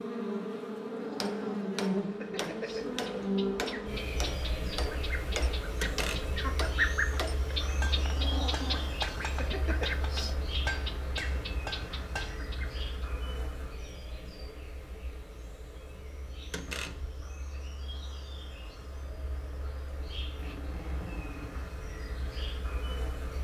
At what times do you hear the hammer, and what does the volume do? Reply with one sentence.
You can hear the hammer from 1.0 to 12.4 s, at a steady volume.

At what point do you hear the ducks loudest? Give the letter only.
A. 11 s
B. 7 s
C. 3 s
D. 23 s
B.